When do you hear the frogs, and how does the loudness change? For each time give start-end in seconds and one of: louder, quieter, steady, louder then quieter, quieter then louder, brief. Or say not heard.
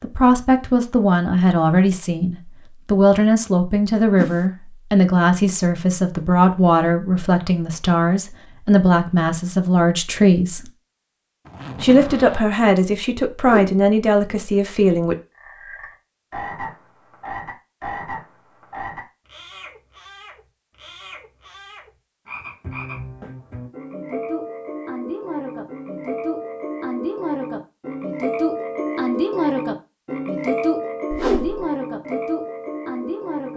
15.3-33.5 quieter then louder.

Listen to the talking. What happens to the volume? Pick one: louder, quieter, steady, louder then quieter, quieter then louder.
steady.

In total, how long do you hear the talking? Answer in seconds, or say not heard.
14 s.